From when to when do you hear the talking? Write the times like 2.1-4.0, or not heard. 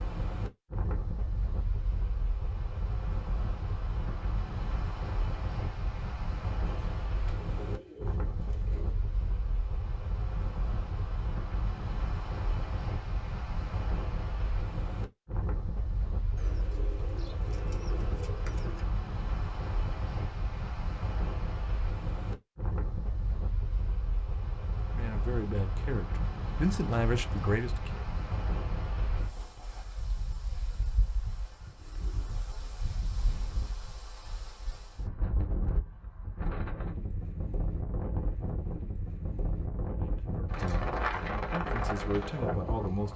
24.9-28.1, 40.0-43.1.